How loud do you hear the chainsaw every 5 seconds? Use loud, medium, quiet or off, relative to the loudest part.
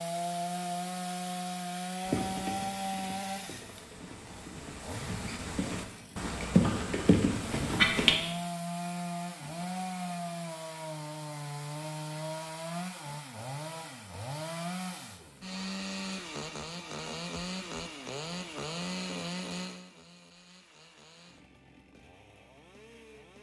loud, loud, loud, loud, quiet.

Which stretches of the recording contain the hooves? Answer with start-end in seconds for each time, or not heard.
2.0-8.2.